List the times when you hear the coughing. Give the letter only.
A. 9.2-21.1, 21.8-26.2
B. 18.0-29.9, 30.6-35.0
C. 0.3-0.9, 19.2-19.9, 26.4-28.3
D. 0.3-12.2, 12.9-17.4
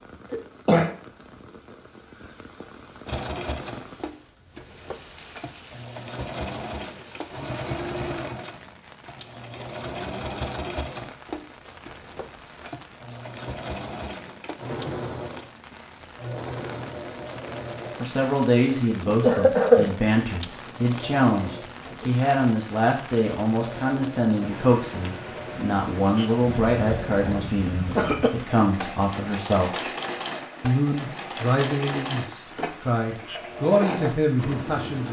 C.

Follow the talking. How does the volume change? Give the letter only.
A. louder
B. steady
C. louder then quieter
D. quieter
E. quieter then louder
B.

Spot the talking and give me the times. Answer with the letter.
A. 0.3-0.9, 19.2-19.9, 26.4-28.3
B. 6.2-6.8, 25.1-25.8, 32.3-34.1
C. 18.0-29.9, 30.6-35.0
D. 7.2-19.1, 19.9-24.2
C.